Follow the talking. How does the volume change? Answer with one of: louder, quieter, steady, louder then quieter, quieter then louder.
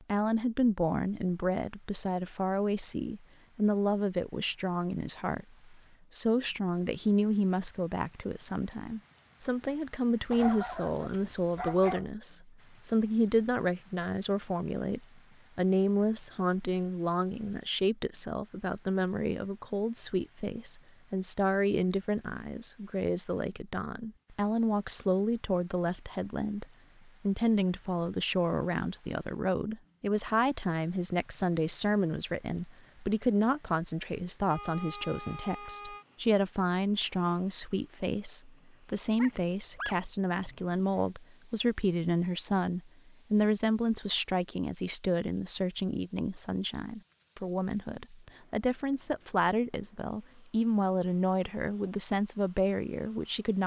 steady.